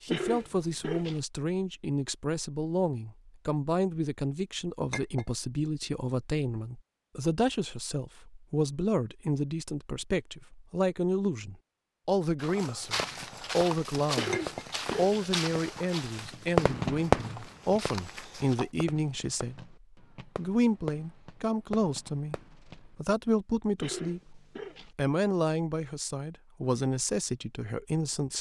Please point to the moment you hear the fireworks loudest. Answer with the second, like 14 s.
17 s.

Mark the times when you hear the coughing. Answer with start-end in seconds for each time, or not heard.
0.1-1.2, 14.2-15.3, 23.8-24.9.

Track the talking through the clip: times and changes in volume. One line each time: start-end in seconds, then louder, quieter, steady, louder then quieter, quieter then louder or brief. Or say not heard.
0.0-28.3 steady.